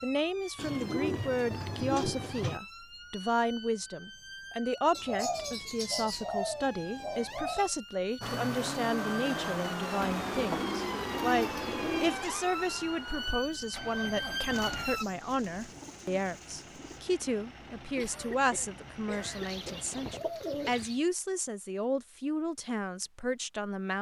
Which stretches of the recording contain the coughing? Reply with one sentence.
You can hear the coughing from 17.9 to 19.9 s.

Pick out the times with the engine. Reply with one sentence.
You can hear the engine from 8.2 to 20.2 s.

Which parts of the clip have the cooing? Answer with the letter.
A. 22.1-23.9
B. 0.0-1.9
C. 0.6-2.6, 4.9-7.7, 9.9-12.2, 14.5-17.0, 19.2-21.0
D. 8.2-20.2
C.